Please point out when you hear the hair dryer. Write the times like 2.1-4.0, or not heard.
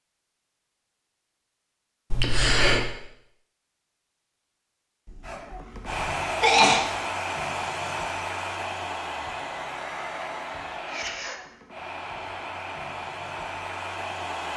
5.2-14.5.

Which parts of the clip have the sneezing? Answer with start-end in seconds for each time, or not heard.
2.1-2.9, 5.0-6.8, 10.8-11.4.